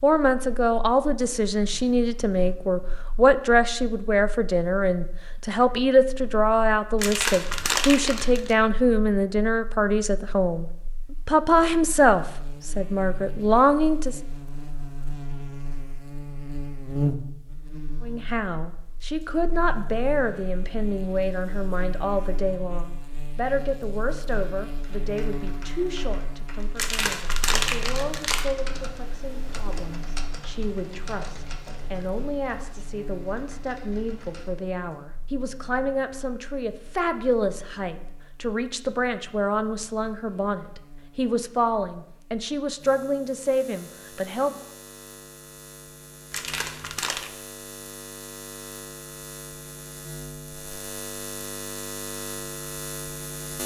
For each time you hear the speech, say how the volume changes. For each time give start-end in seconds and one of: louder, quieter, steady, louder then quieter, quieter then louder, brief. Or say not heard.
0.0-10.7 steady
11.2-14.2 brief
18.0-44.5 quieter then louder.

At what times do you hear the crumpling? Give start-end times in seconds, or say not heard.
7.0-8.6, 26.8-28.6, 46.3-47.3.